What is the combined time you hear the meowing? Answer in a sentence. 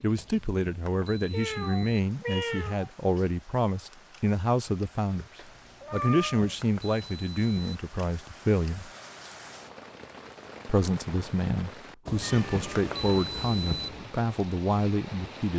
The meowing can be heard for 5 seconds in total.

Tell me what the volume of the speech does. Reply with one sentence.
The volume of the speech stays about the same.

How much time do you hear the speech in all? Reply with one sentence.
The speech can be heard for 13 seconds in total.